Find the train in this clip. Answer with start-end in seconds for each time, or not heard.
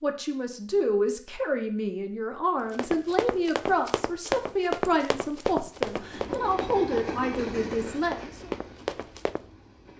5.8-9.9.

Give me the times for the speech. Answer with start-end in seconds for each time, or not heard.
0.0-8.5.